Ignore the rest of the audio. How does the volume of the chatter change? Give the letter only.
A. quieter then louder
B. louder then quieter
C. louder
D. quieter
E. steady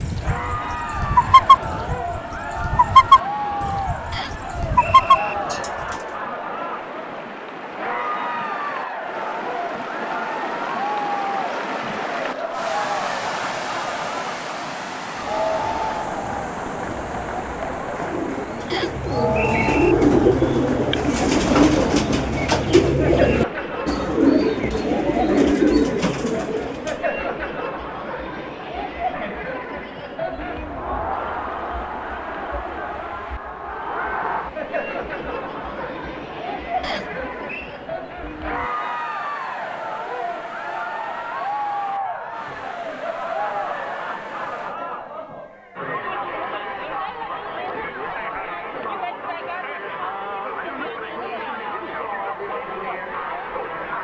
E.